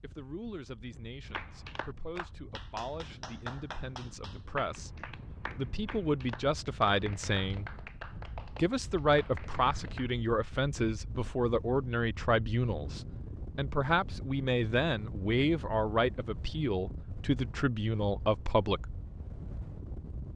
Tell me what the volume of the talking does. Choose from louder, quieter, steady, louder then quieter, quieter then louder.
louder.